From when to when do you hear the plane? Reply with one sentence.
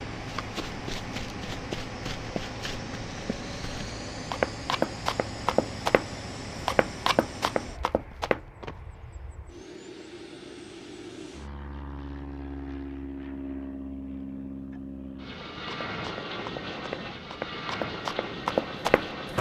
You can hear the plane from 0.0 to 19.3 s.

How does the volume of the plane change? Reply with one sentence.
The volume of the plane goes down, then up.